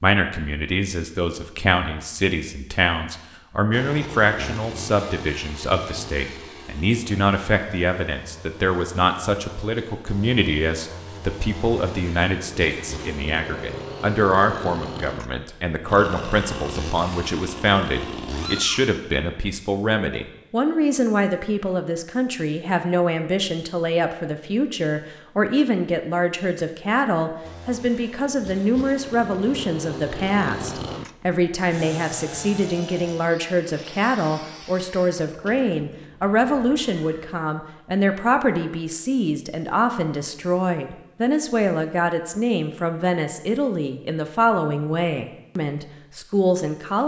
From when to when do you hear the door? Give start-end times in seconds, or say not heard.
not heard.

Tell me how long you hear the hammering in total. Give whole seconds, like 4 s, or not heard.
not heard.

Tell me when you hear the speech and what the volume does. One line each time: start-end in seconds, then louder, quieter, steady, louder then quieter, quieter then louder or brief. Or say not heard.
0.0-47.0 steady.